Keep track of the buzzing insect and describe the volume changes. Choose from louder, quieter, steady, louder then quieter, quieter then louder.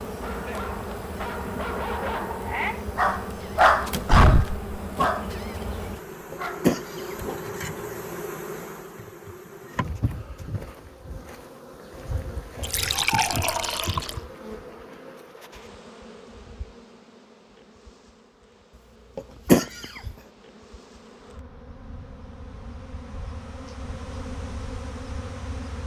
quieter then louder.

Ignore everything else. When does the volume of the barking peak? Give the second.
4 s.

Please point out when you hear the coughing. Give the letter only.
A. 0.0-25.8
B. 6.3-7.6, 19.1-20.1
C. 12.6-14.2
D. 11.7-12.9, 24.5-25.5
B.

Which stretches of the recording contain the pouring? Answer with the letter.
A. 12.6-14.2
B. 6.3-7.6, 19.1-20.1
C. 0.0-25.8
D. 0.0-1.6
A.